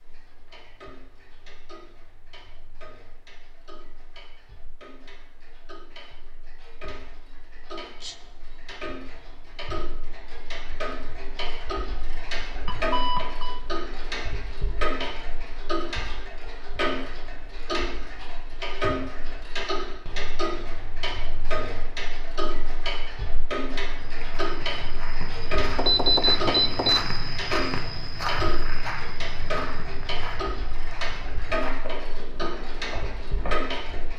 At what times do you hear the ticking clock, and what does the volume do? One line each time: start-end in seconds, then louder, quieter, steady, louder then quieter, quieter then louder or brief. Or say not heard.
0.0-34.1 louder.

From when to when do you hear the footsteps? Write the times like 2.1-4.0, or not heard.
23.9-34.1.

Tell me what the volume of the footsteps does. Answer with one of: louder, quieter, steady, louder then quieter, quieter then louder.
louder then quieter.